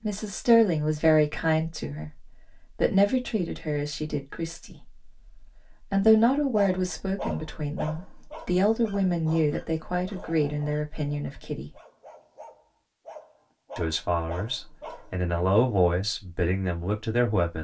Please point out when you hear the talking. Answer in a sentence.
The talking can be heard from 0.0 to 4.9 s, from 5.9 to 11.7 s and from 13.8 to 17.5 s.